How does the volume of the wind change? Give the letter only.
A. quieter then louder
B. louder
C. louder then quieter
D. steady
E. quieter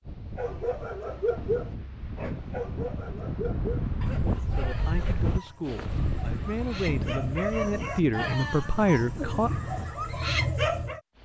C.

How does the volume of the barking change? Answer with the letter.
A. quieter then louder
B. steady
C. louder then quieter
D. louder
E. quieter
A.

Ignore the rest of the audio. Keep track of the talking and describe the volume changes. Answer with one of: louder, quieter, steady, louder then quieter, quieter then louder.
louder.